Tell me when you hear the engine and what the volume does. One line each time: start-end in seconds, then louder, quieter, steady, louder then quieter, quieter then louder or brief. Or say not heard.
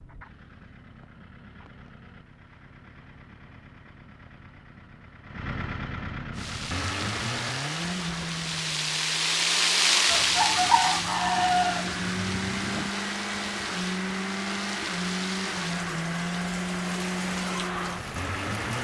0.0-18.7 louder.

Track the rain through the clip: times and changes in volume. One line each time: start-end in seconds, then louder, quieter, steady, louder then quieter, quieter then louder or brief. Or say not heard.
6.3-18.7 louder then quieter.